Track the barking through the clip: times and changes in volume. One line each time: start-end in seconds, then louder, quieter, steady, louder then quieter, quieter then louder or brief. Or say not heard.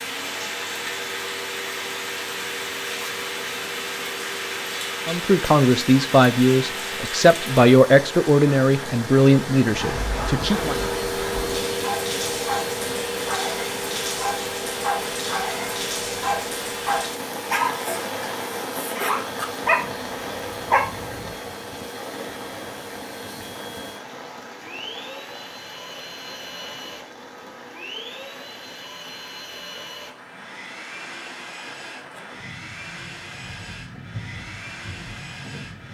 11.8-21.4 louder.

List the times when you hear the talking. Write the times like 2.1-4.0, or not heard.
5.0-10.8.